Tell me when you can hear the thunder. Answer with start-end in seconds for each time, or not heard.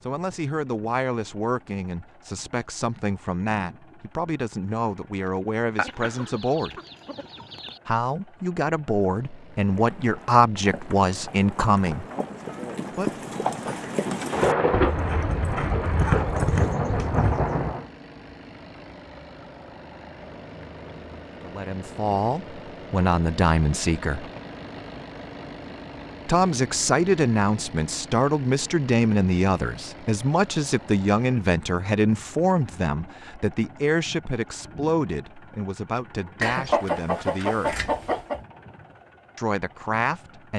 14.3-17.9.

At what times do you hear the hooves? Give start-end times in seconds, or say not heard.
9.6-17.4.